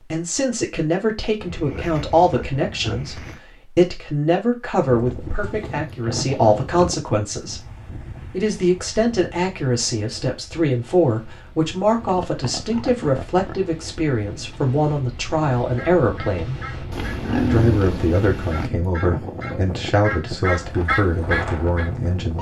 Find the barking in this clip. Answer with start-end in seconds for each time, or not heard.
not heard.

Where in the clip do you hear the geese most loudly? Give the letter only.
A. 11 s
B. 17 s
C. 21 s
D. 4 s
C.